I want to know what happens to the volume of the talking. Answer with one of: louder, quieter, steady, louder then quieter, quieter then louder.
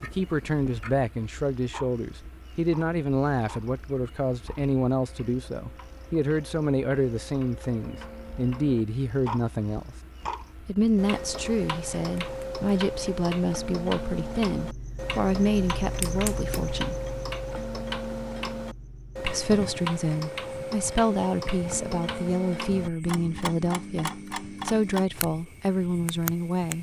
steady.